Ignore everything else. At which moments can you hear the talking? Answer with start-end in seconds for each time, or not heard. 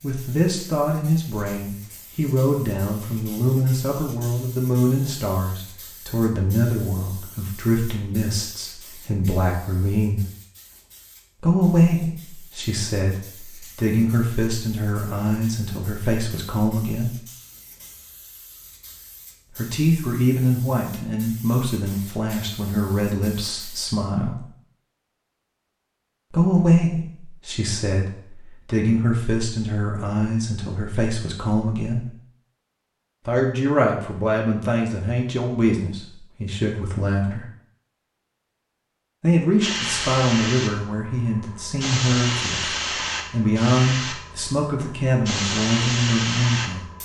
0.0-10.2, 11.4-17.2, 19.6-24.4, 26.3-32.1, 33.2-37.5, 39.2-46.9.